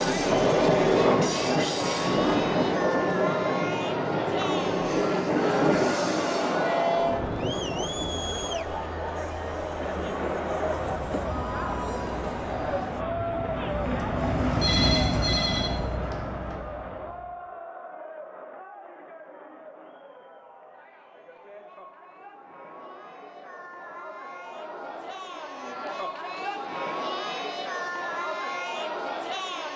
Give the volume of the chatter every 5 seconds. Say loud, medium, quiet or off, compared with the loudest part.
loud, loud, loud, medium, quiet, loud.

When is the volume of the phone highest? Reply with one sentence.
The volume of the phone peaks at 15 seconds.